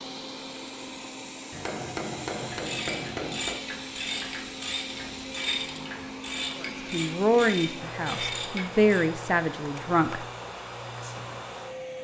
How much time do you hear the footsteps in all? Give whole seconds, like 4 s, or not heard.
not heard.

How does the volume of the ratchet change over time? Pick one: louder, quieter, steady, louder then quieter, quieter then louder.
steady.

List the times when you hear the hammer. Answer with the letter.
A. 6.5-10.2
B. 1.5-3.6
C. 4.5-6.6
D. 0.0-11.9
B.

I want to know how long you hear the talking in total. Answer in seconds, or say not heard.
4 s.